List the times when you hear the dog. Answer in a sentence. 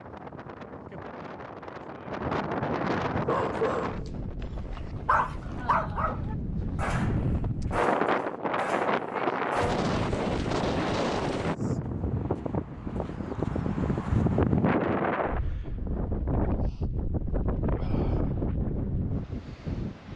You can hear the dog from 3.1 to 9.9 s.